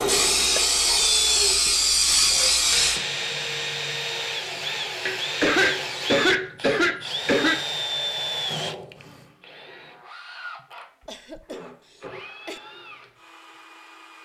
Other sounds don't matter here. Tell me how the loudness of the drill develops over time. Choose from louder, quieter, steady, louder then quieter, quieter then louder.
quieter.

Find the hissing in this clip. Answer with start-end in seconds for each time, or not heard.
0.1-3.0.